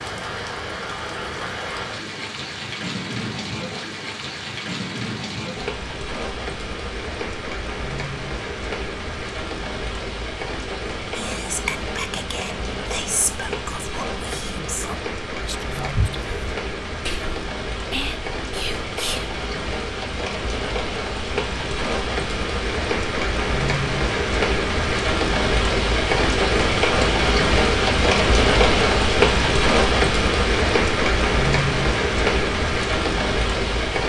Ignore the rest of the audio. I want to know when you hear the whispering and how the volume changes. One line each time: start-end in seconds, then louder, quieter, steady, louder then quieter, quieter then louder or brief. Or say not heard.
11.2-19.4 steady.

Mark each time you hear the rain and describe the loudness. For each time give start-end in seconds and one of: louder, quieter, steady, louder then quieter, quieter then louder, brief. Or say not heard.
0.0-34.0 louder.